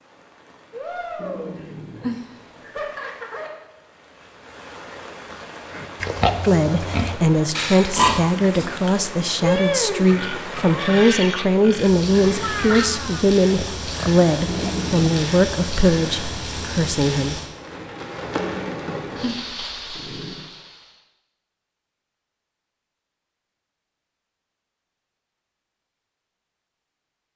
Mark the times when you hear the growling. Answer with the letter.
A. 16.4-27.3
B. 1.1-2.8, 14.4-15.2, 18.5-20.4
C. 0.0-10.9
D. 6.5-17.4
B.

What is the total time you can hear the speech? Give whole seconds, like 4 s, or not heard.
11 s.